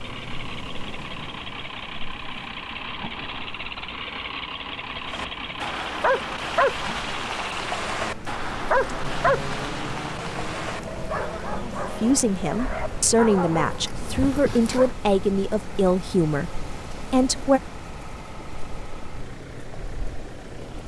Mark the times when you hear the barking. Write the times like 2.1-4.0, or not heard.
5.1-14.9.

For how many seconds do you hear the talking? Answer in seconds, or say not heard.
6 s.